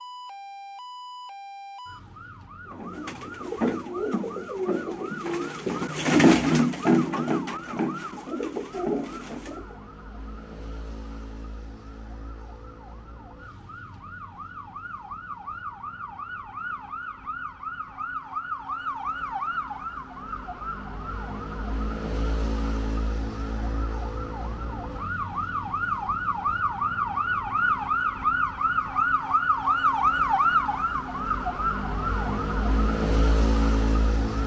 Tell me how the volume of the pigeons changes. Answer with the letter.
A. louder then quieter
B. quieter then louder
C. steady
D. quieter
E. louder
A.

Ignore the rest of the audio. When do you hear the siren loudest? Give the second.
30 s.